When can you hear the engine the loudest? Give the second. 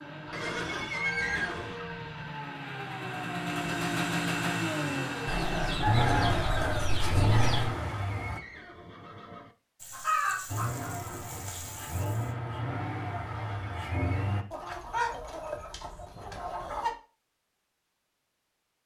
6 s.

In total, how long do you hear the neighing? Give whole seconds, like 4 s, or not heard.
4 s.